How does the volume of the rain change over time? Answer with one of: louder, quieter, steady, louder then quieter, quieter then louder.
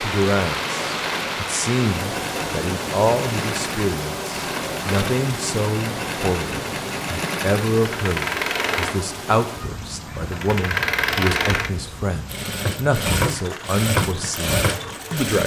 quieter.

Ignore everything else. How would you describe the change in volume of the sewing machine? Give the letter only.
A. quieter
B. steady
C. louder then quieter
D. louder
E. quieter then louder
D.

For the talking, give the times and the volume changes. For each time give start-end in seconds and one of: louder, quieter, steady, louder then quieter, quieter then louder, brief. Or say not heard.
0.0-15.4 steady.